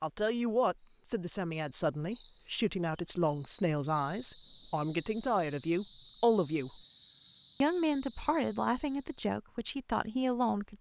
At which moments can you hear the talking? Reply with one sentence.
The talking can be heard from 0.0 to 6.8 s and from 7.6 to 10.7 s.